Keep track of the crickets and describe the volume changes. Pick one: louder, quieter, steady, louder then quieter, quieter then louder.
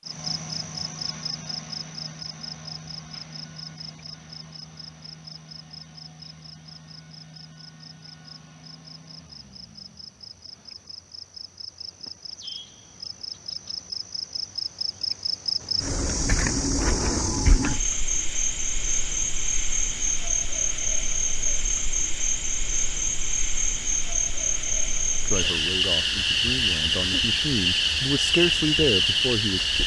quieter then louder.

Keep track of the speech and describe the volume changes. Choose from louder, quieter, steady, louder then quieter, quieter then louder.
louder.